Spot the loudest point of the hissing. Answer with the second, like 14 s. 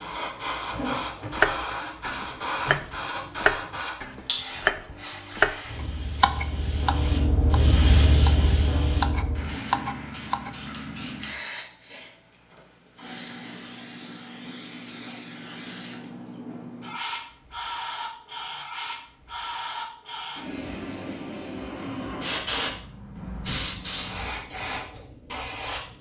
8 s.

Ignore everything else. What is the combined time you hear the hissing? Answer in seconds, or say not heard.
26 s.